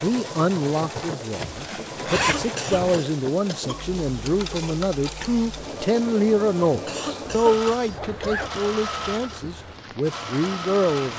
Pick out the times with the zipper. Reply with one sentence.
You can hear the zipper from 1.3 to 3.0 s and from 7.2 to 8.5 s.